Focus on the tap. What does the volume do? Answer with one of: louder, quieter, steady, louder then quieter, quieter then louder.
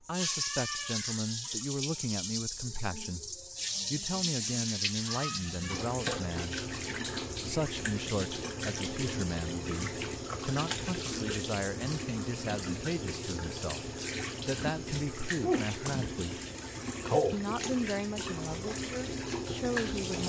steady.